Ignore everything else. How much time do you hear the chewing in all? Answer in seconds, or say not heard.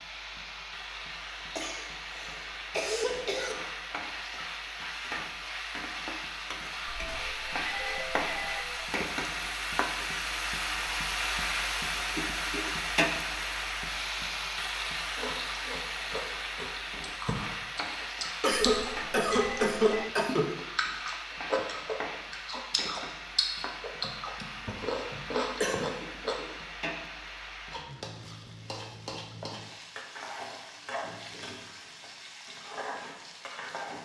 11 s.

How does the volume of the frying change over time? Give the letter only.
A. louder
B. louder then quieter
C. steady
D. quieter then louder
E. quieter
B.